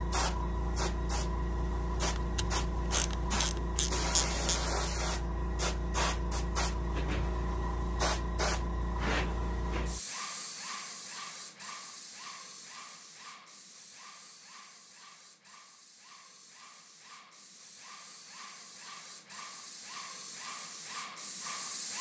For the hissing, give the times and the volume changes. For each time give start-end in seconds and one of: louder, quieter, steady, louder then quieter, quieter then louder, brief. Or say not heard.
0.0-21.9 quieter then louder.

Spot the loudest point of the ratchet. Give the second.
4 s.